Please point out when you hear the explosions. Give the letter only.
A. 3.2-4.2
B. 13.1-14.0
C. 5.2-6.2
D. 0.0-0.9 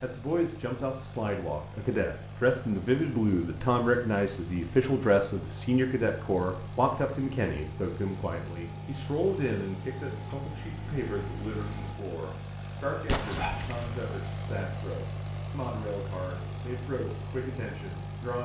B.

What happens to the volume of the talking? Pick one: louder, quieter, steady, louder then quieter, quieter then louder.
quieter.